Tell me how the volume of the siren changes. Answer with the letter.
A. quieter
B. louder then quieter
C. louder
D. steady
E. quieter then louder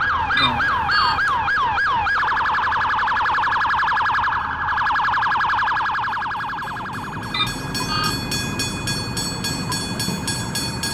A.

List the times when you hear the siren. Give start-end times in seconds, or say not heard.
0.0-10.8.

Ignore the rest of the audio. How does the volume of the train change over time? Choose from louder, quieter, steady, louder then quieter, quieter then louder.
louder.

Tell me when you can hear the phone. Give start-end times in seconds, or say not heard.
0.3-1.4, 7.3-8.2.